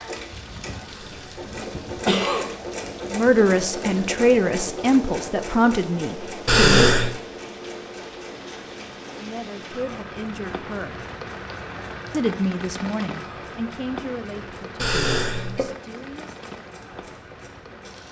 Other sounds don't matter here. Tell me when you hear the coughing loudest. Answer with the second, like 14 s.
7 s.